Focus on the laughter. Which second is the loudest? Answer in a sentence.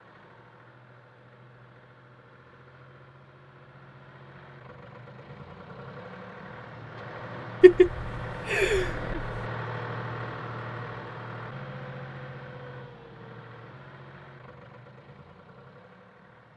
The loudest moment of the laughter is at 8 seconds.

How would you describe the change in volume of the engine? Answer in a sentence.
The loudness of the engine goes up, then down.